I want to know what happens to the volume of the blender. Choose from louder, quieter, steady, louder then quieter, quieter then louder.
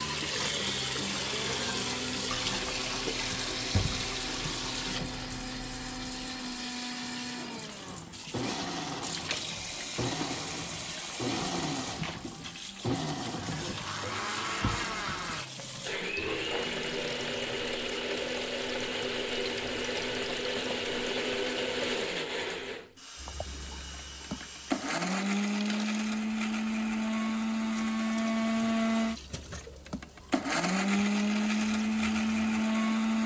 louder.